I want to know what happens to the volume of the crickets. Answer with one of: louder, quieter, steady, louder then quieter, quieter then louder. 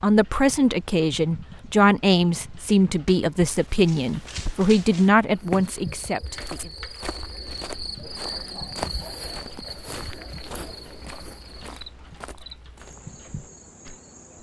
louder then quieter.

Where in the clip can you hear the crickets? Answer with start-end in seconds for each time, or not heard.
5.3-14.3.